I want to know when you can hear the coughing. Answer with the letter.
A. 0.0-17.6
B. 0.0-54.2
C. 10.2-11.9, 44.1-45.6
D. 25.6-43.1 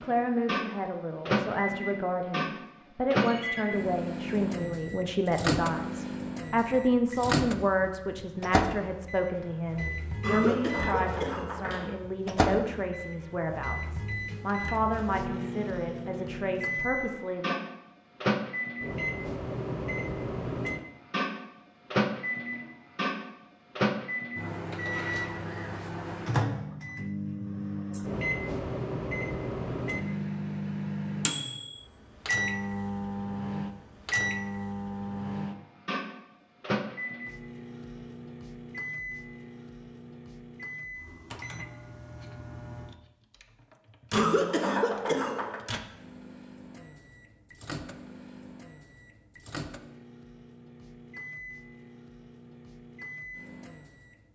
C.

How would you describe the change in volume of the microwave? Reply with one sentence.
The volume of the microwave goes down.